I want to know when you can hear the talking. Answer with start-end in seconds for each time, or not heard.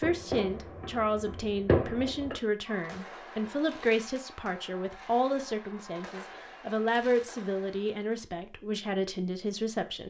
0.0-10.0.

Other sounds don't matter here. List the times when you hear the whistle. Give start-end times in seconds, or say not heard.
not heard.